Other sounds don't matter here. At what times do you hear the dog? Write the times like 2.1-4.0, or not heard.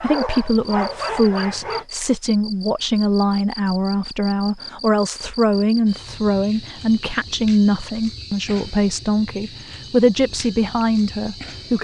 0.0-1.9.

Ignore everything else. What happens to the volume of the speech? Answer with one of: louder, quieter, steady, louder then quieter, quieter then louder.
steady.